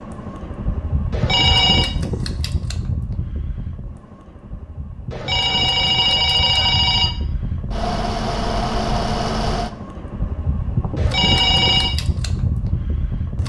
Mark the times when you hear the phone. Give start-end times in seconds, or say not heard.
1.1-1.9, 5.1-7.1, 10.9-11.9.